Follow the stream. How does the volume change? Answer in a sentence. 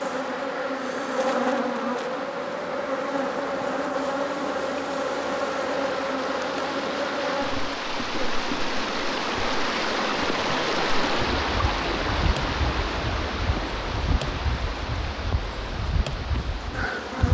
The loudness of the stream goes up, then down.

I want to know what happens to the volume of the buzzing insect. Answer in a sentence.
The volume of the buzzing insect goes down.